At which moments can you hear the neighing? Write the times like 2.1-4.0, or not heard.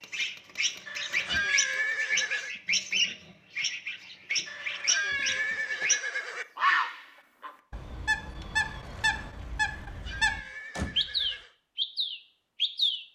0.8-2.5, 4.5-6.5, 9.7-11.6.